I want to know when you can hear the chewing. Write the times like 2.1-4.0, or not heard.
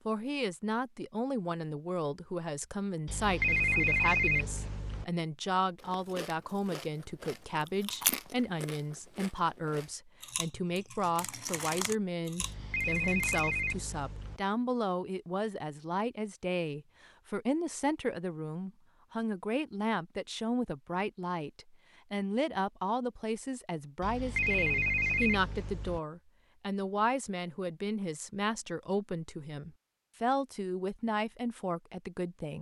5.9-13.4.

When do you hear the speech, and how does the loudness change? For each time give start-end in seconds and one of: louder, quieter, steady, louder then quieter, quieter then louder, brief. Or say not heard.
0.1-32.5 steady.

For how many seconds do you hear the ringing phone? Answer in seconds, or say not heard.
6 s.